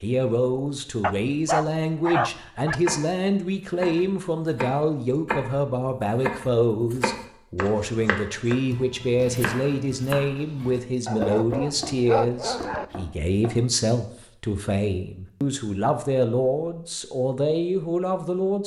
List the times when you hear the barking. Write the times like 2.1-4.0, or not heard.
1.0-2.8, 11.1-12.8.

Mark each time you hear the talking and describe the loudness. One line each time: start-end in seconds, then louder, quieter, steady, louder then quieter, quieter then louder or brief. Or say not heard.
0.0-18.6 steady.